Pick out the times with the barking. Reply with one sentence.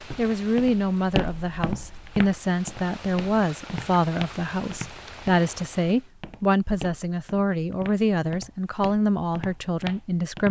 You can't hear the barking here.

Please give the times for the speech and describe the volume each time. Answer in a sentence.
The speech can be heard from 0.1 to 10.4 s, at a steady volume.